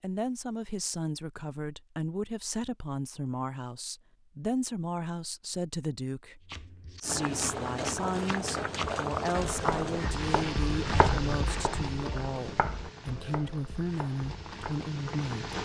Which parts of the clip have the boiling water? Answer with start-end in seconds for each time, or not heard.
7.0-15.5.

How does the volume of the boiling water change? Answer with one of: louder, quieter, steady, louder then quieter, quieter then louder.
quieter.